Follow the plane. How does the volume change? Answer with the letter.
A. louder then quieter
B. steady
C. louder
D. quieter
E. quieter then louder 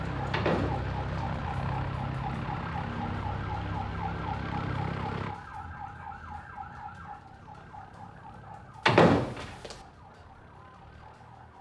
D.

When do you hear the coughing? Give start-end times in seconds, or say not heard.
not heard.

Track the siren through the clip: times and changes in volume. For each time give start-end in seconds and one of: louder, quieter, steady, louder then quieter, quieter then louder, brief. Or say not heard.
0.0-11.5 quieter.